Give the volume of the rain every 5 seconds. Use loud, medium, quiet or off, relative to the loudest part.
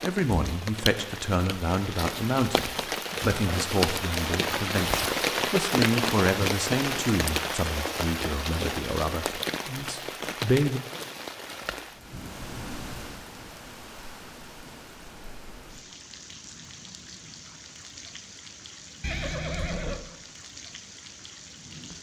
loud, loud, medium, quiet, quiet.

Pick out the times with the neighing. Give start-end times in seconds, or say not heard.
19.0-20.0.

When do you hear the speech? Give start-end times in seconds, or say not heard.
0.0-10.8.